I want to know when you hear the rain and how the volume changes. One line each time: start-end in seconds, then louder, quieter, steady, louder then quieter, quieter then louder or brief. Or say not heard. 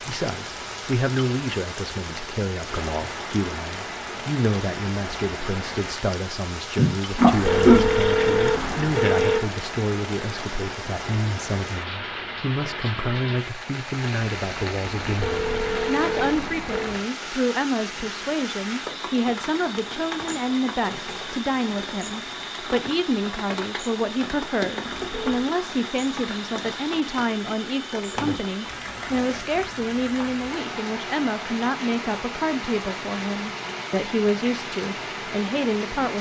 0.0-36.1 steady.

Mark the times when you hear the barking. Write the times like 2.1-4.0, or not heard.
not heard.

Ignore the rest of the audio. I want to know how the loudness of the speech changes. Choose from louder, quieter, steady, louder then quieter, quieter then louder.
steady.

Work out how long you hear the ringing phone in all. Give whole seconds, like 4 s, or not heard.
5 s.